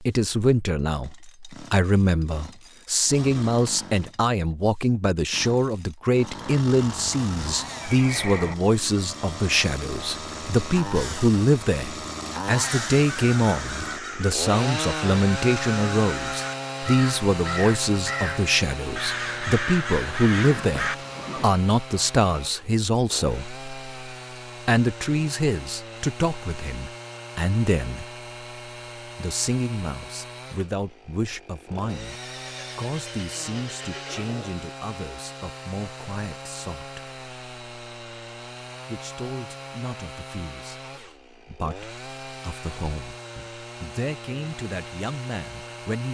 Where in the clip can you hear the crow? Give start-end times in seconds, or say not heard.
12.7-20.9.